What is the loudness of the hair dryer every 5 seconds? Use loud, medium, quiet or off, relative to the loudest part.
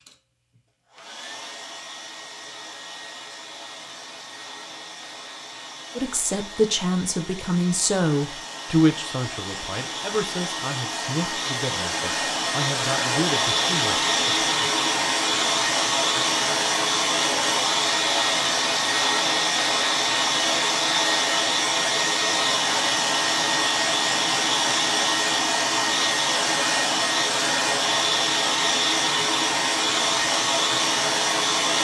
quiet, quiet, loud, loud, loud, loud, loud.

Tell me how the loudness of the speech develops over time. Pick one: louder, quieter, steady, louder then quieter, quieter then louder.
quieter.